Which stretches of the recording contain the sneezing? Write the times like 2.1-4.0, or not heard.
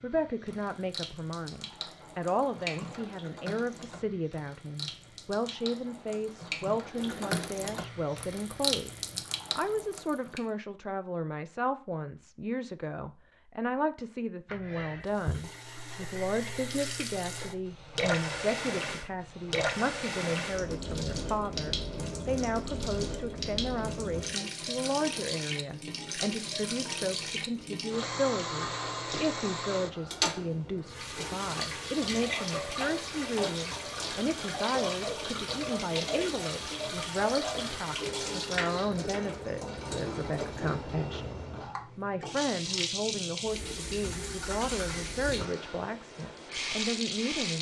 14.4-15.4.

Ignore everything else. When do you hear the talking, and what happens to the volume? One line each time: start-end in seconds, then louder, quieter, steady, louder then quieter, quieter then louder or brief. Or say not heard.
0.0-47.5 steady.